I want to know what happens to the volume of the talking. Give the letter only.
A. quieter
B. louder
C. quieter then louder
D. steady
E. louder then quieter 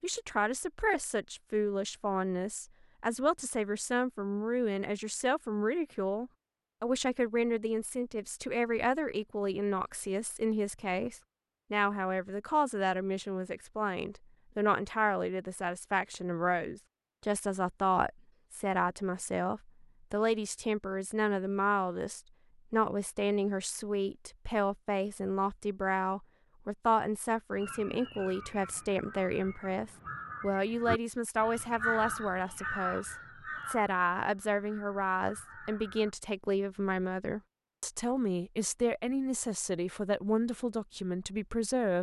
D.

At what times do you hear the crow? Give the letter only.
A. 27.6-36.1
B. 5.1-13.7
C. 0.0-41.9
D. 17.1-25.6
A.